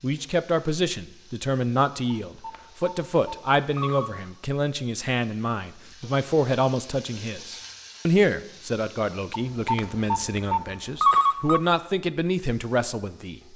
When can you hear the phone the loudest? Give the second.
11 s.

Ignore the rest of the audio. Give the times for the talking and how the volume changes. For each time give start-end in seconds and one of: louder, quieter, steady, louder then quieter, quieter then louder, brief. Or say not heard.
0.0-13.4 steady.